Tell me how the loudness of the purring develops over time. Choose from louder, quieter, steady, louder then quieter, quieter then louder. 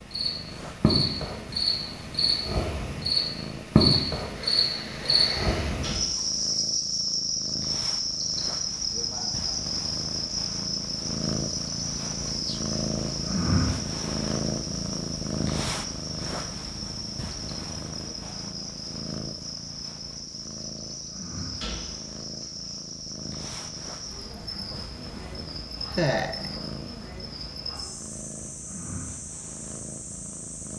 louder then quieter.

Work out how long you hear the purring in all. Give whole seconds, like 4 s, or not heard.
31 s.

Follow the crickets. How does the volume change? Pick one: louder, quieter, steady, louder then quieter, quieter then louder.
quieter.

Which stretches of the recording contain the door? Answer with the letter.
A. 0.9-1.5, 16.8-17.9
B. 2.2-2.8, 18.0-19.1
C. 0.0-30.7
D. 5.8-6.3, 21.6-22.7
D.